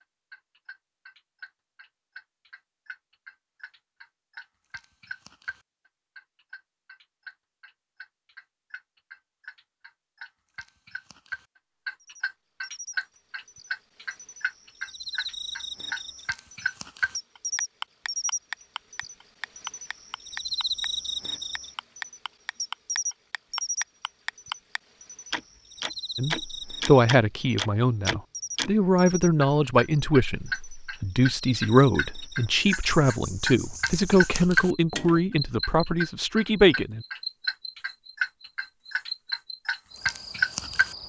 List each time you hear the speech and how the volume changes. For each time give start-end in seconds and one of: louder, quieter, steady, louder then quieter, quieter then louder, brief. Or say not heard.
26.1-37.0 steady.